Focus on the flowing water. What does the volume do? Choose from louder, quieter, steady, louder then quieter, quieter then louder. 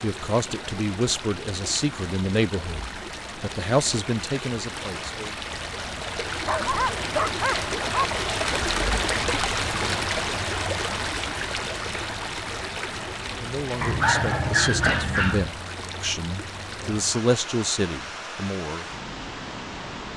louder then quieter.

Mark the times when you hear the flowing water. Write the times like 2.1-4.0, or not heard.
0.0-20.1.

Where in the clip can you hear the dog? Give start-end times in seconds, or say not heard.
6.5-8.2, 13.8-15.4.